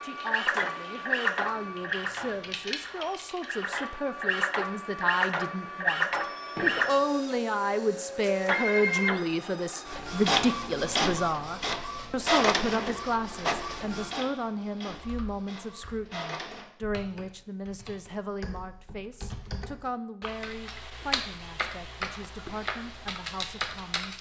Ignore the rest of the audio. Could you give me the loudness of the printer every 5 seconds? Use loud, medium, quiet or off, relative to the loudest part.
loud, loud, loud, quiet, off.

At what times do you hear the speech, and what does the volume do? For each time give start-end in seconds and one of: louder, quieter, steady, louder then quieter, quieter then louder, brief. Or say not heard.
0.0-24.1 louder then quieter.